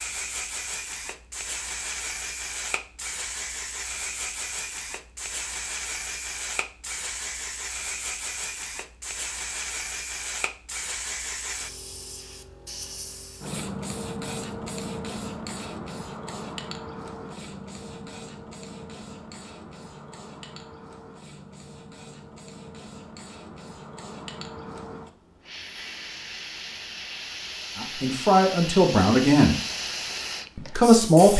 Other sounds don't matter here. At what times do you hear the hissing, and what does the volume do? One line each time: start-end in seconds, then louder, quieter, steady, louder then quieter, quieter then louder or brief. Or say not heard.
0.0-31.3 quieter then louder.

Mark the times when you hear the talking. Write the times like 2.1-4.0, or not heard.
27.8-29.6, 30.6-31.3.